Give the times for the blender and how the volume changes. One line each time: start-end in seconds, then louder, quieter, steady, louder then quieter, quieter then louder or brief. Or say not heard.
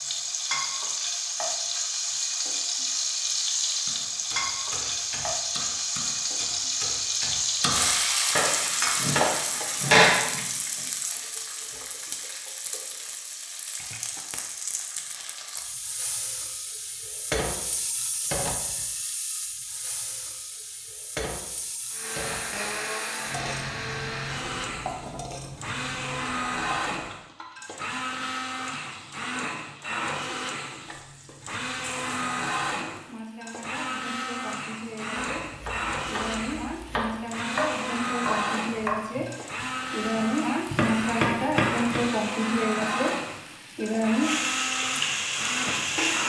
21.9-46.2 steady.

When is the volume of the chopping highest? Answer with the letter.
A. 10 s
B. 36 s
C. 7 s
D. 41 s
A.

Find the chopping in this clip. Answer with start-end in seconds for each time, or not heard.
3.9-10.4, 35.1-42.0.